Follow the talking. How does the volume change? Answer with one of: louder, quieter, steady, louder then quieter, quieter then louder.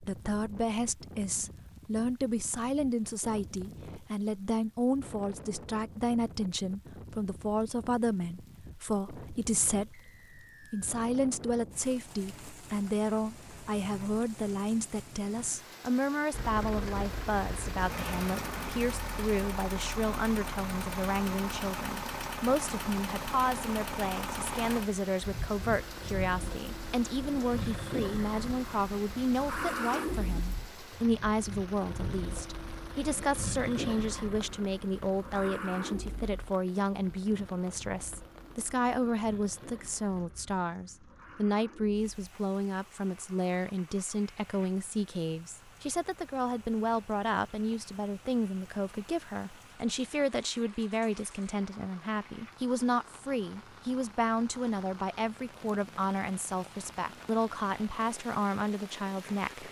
steady.